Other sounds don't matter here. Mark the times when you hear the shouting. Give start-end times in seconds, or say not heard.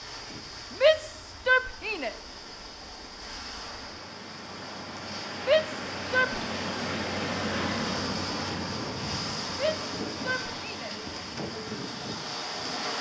0.7-2.1, 5.5-6.4, 9.5-10.9.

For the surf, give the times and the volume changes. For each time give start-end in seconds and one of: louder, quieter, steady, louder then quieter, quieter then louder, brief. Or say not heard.
0.0-12.9 louder.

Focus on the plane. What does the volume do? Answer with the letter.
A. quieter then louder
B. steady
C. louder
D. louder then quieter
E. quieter
D.